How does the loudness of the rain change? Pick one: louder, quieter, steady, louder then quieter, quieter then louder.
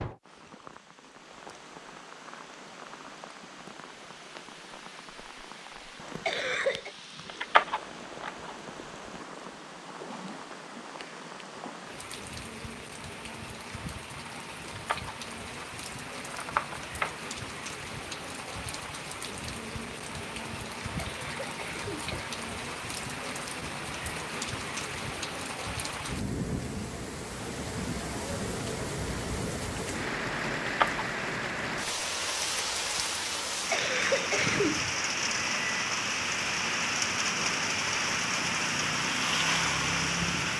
louder.